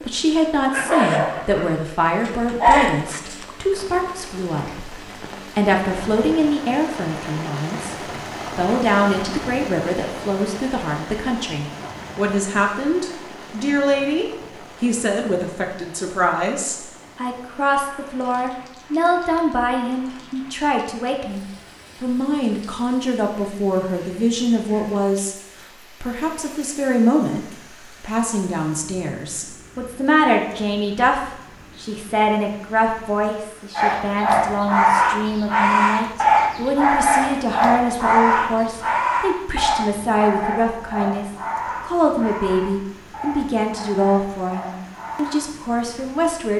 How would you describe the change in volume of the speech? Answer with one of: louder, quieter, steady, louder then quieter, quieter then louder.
steady.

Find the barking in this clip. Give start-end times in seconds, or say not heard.
0.0-3.5, 33.8-45.5.